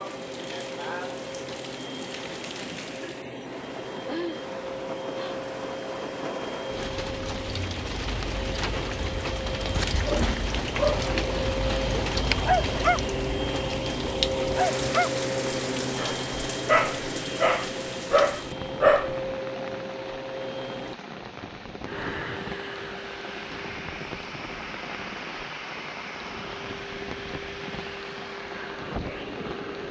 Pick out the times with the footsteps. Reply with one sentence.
You can't hear the footsteps here.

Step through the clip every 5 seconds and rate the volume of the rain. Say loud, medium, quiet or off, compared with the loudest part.
medium, loud, loud, medium, medium, medium.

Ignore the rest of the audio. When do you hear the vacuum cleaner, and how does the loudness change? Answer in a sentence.
You can hear the vacuum cleaner from 0.0 to 29.8 s, getting louder then quieter.